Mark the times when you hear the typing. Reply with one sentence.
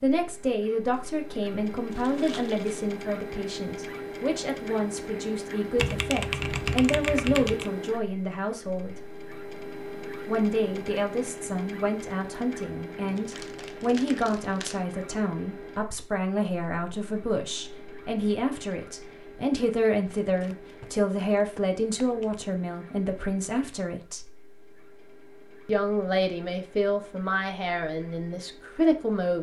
You can hear the typing from 5.8 to 7.7 s.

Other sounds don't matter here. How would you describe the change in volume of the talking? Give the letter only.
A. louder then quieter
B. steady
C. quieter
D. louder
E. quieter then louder
B.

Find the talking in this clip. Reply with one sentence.
You can hear the talking from 0.0 to 9.0 s, from 10.2 to 24.2 s and from 25.6 to 29.3 s.